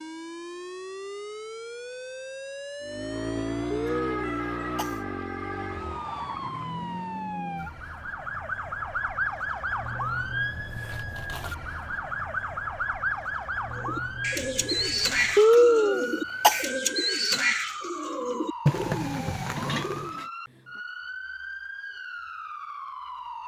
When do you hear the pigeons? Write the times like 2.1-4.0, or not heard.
13.8-20.2.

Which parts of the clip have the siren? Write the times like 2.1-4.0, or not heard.
0.0-23.4.